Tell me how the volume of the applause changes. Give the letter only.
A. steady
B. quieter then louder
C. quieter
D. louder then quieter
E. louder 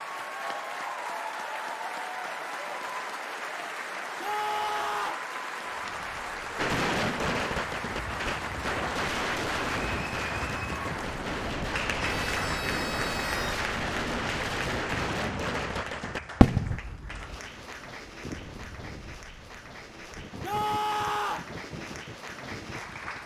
C.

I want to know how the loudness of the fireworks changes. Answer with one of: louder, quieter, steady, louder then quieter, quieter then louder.
steady.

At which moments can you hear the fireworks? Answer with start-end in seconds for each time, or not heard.
6.5-16.8.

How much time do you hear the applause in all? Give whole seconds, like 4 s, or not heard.
23 s.